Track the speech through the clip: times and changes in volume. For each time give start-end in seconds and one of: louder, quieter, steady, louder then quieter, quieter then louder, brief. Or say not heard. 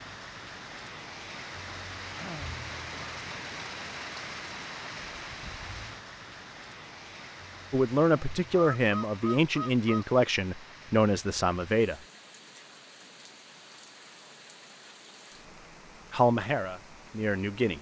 7.7-11.9 steady
16.1-17.7 brief.